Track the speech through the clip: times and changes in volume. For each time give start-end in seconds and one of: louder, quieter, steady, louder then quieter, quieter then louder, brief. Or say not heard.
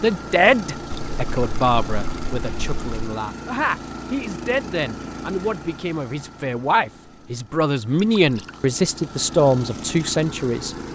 0.0-10.8 quieter then louder.